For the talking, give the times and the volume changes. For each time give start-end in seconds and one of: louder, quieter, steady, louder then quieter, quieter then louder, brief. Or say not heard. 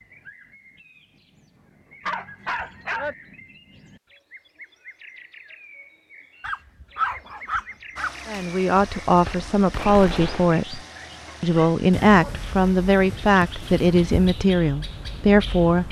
8.2-10.8 brief
11.4-15.8 steady.